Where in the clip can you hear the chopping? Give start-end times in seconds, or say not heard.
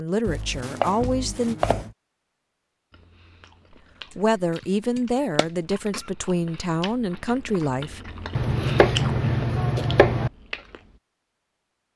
0.2-1.9, 5.0-6.0, 8.3-10.3.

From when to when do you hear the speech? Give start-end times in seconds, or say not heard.
0.0-1.6, 4.2-8.0.